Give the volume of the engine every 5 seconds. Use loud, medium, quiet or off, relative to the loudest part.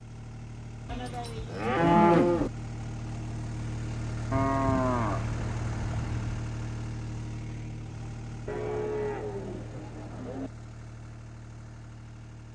loud, loud, medium.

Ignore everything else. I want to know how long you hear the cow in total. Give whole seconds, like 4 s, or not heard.
6 s.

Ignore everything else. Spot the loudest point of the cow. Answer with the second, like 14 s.
2 s.